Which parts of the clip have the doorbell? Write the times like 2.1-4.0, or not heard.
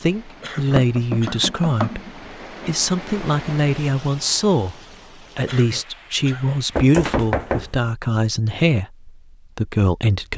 not heard.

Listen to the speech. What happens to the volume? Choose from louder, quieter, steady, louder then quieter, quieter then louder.
steady.